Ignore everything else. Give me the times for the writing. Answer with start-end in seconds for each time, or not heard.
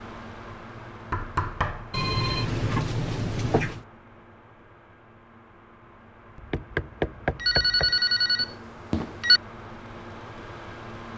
not heard.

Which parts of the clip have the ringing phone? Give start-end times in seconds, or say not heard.
1.9-3.9, 7.3-9.4.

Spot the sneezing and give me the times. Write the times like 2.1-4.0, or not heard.
not heard.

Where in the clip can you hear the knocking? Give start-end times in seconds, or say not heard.
1.1-1.9, 6.3-8.0.